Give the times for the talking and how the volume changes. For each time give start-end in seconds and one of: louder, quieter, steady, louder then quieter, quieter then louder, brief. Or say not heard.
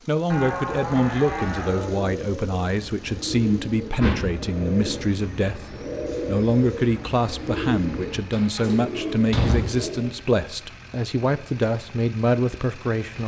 0.1-13.2 steady.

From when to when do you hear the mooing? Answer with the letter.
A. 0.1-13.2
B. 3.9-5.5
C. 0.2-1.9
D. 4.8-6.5
C.